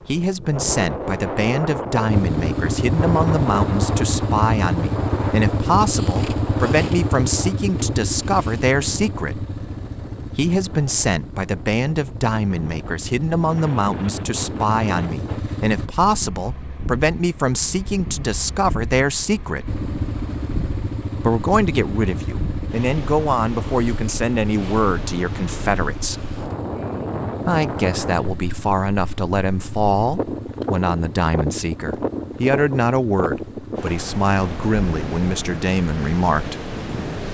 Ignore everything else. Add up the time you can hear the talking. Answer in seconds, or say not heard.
33 s.